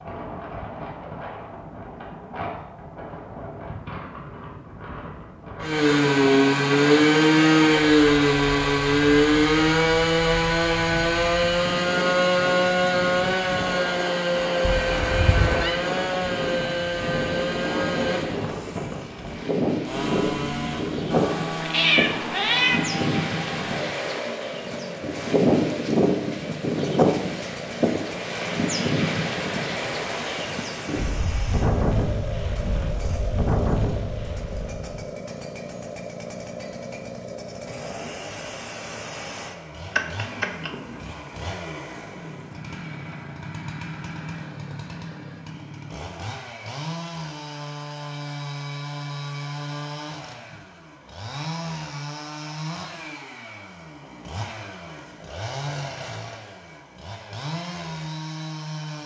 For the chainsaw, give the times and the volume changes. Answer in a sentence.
You can hear the chainsaw from 5.6 to 59.0 s, getting quieter.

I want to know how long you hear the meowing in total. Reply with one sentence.
You can hear the meowing for 4 seconds altogether.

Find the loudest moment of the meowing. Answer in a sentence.
The loudest moment of the meowing is at 22 seconds.